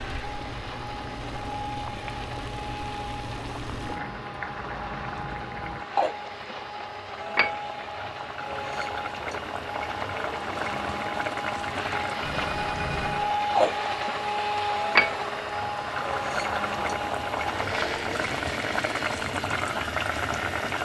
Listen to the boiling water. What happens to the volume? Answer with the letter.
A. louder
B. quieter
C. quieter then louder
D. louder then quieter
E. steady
A.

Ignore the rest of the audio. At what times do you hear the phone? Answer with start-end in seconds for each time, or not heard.
12.2-13.3.